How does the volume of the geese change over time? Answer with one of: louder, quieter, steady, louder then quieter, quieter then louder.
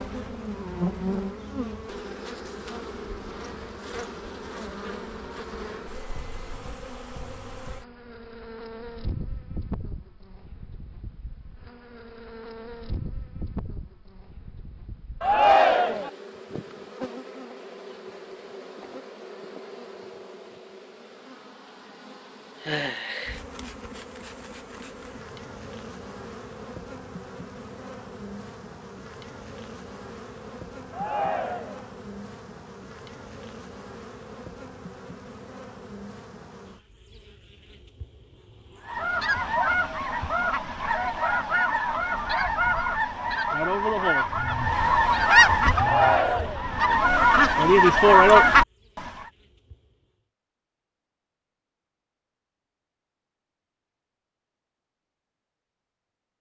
louder.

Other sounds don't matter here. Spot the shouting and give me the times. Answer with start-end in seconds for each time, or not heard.
15.2-16.1, 30.9-31.9, 45.7-46.6.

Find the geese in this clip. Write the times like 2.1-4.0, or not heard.
38.9-49.1.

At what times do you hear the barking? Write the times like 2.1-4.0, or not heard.
not heard.